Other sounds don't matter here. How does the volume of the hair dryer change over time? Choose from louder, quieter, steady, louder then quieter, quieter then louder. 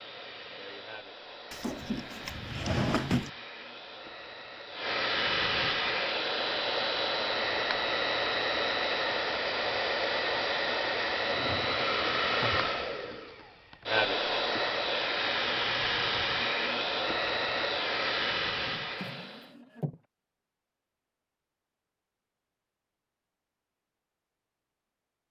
louder.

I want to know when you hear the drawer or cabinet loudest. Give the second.
3 s.